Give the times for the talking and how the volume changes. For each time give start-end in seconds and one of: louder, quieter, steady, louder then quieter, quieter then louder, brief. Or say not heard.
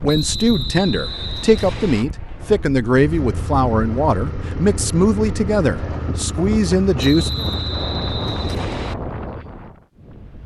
0.0-7.3 steady.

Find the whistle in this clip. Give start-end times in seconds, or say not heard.
0.1-2.0, 7.0-8.9.